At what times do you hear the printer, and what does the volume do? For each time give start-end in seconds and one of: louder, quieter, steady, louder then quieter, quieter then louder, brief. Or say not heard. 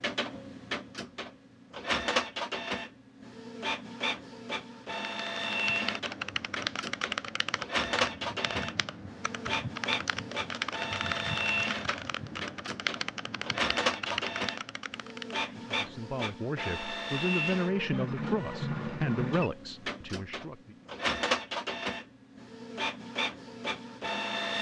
0.0-24.5 steady.